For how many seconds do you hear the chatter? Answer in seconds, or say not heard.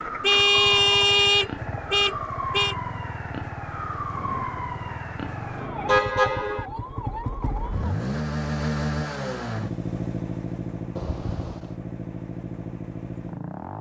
not heard.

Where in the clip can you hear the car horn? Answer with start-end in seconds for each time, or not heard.
0.2-2.8, 5.8-6.7, 10.9-11.8.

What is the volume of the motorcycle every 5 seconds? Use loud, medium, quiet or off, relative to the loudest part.
medium, loud, loud.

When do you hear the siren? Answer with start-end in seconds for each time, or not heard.
0.0-8.0.